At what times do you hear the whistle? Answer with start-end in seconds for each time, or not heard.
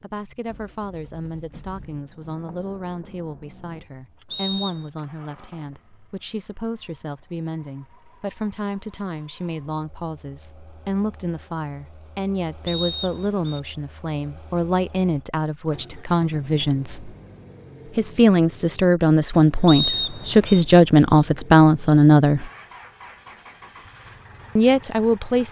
4.3-4.9, 12.7-13.6, 19.6-20.6.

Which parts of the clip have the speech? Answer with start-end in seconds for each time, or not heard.
0.0-17.1, 17.9-22.5, 24.6-25.4.